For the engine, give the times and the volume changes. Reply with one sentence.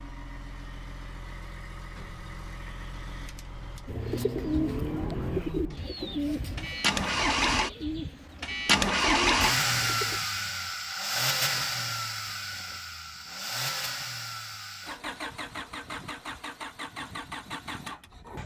You can hear the engine from 0.0 to 18.4 s, getting louder then quieter.